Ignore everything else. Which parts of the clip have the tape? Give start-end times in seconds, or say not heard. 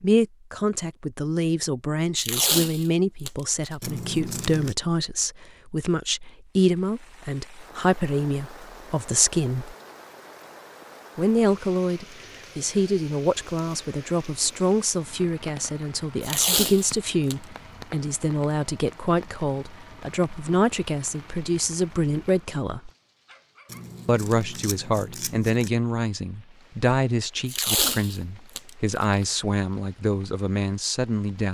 2.1-3.3, 16.2-17.4, 27.4-29.2.